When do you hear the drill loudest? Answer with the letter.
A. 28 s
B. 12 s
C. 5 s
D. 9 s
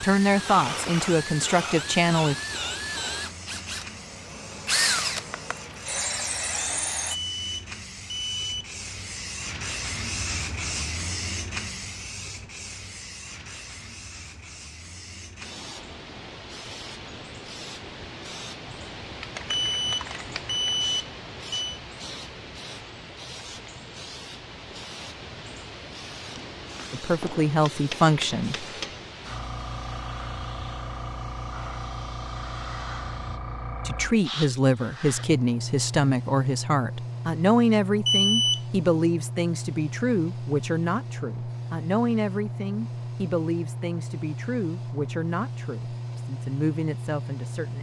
C.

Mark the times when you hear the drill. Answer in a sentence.
You can hear the drill from 0.0 to 7.2 s.